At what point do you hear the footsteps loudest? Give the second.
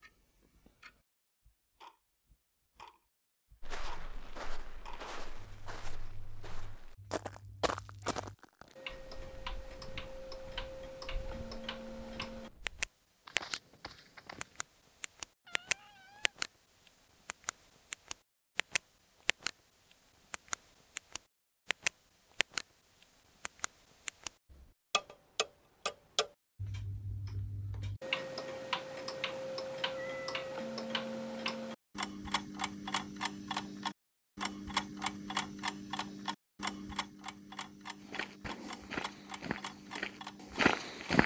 41 s.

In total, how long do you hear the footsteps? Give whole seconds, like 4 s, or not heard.
14 s.